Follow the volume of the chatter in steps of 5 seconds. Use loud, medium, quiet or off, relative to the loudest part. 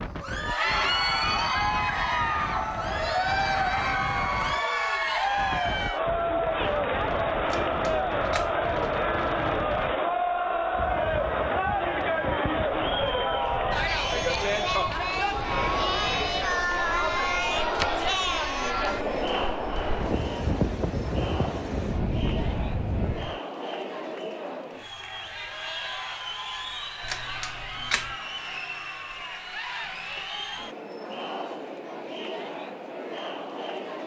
loud, loud, loud, loud, medium, medium, medium.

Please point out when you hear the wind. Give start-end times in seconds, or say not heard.
0.0-23.4.